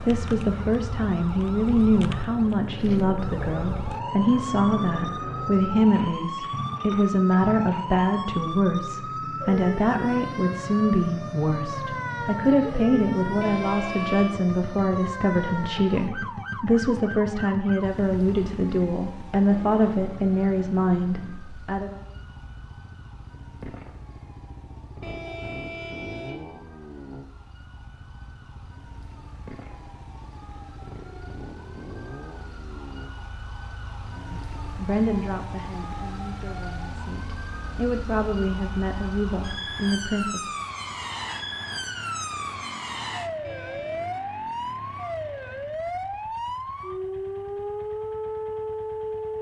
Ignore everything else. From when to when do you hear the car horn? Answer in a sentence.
The car horn can be heard from 13.4 to 14.3 s, from 25.0 to 26.5 s and from 43.4 to 44.0 s.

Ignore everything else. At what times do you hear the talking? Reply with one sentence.
The talking can be heard from 0.0 to 22.0 s and from 34.1 to 40.5 s.